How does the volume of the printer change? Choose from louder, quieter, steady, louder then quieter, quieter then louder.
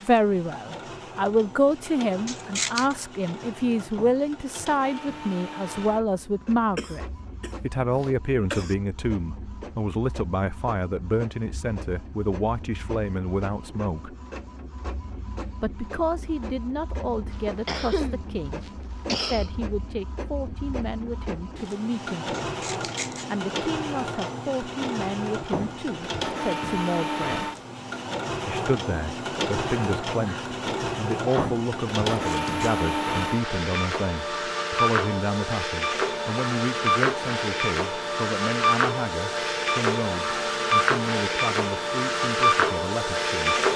louder.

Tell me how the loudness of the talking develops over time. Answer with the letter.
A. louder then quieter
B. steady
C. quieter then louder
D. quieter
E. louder
D.